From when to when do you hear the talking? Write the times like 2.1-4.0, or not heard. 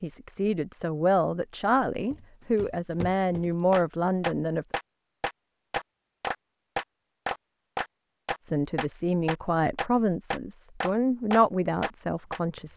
0.0-4.7, 8.4-12.7.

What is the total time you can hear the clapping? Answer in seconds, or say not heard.
9 s.